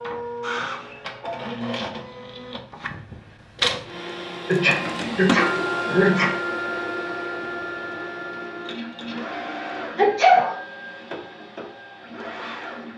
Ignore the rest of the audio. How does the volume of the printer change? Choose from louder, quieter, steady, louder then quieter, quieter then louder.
louder then quieter.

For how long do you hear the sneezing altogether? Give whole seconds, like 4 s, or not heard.
3 s.